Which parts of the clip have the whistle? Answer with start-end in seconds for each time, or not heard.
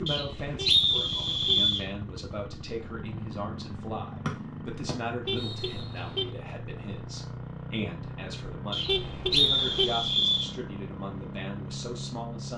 0.1-1.9, 4.2-5.8, 8.7-10.5.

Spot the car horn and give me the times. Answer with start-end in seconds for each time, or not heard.
0.6-1.6, 5.2-6.3, 8.8-9.9.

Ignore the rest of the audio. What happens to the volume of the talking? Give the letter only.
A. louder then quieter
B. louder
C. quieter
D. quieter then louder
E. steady
E.